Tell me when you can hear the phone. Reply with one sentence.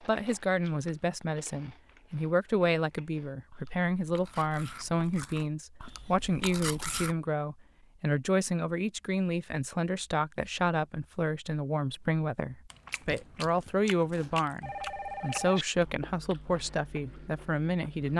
You can hear the phone from 14.6 to 15.6 s.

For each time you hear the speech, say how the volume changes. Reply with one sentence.
The speech can be heard from 0.1 to 18.1 s, at a steady volume.